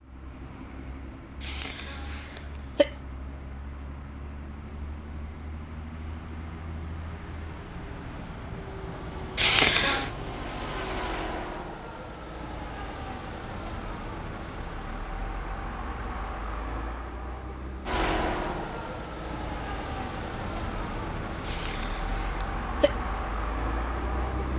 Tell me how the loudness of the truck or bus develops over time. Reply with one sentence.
The volume of the truck or bus goes up.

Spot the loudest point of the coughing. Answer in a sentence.
The loudest moment of the coughing is at 10 seconds.